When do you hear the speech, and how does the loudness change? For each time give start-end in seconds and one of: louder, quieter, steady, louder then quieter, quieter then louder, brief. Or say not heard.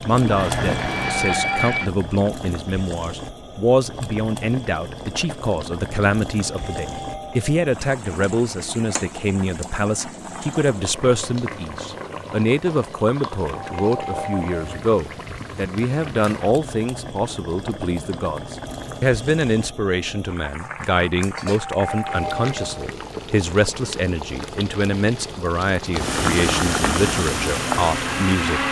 0.0-28.6 steady.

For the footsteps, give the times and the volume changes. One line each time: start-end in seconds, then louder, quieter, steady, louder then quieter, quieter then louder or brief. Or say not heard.
not heard.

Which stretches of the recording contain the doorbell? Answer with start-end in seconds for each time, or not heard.
6.5-7.5, 13.4-14.8, 21.5-22.9.